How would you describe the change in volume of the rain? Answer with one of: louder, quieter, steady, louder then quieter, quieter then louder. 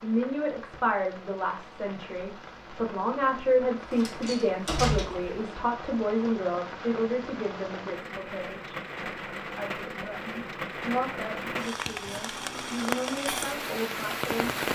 louder.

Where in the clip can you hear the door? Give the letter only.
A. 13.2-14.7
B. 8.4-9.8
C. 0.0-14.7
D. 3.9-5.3
D.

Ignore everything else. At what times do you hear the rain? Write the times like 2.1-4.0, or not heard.
0.0-14.7.